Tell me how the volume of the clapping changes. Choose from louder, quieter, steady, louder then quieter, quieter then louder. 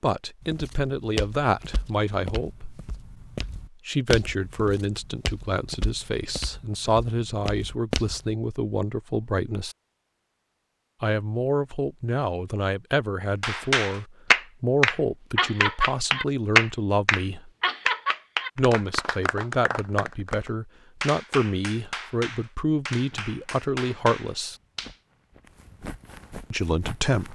quieter.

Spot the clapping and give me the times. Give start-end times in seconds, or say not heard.
13.4-24.9.